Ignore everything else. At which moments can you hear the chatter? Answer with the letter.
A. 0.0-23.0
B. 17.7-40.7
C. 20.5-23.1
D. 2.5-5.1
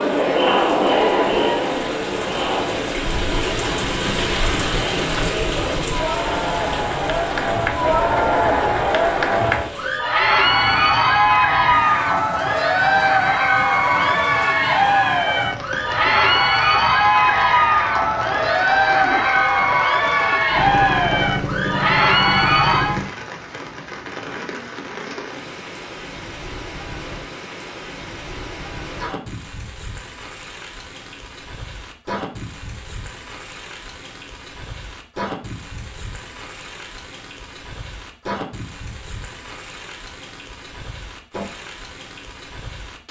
A.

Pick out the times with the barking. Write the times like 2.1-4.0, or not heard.
not heard.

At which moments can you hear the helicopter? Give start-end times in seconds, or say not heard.
20.5-23.1.